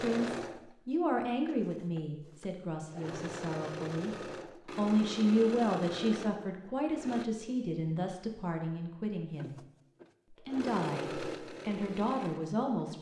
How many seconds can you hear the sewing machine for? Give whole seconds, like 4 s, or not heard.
11 s.